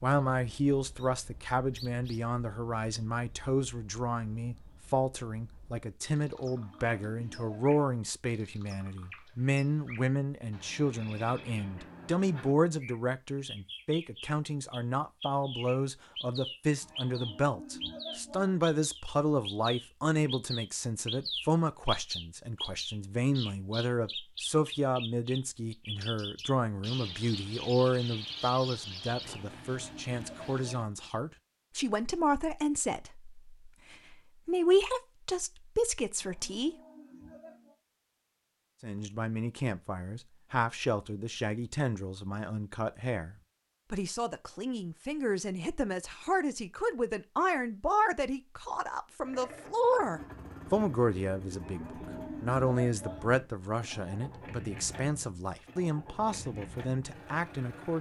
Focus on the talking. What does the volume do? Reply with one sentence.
The volume of the talking stays about the same.